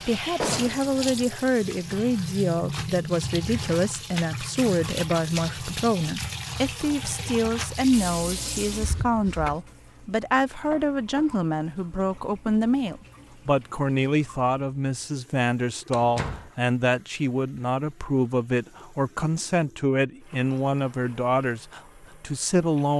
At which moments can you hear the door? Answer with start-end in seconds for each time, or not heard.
0.3-0.9, 8.8-9.6, 15.9-16.5.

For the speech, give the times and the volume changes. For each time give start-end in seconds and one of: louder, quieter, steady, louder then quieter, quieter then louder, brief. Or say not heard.
0.1-22.9 steady.